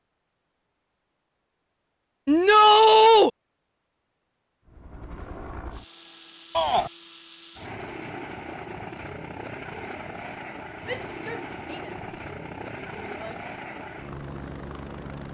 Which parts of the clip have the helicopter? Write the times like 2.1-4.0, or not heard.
4.7-15.2.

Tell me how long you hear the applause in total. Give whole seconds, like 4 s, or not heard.
not heard.